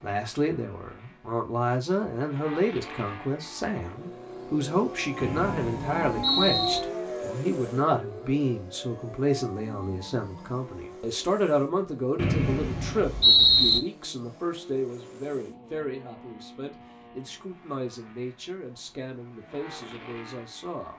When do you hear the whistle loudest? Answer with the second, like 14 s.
13 s.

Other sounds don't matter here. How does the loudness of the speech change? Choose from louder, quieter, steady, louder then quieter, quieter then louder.
quieter.